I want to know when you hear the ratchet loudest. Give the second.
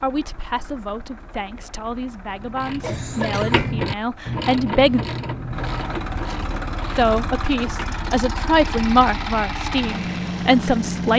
4 s.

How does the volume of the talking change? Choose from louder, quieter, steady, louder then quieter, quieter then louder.
louder.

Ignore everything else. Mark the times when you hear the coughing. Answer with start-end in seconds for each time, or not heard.
2.8-3.6.